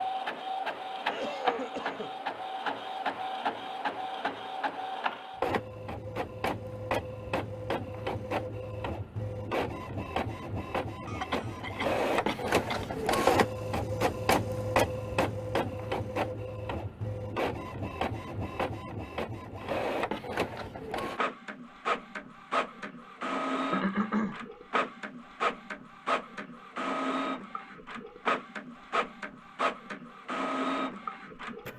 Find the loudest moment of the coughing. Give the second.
24 s.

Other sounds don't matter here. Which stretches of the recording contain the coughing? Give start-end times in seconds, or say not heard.
1.0-2.1, 11.1-12.8, 23.7-24.4.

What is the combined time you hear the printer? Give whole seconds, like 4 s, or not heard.
32 s.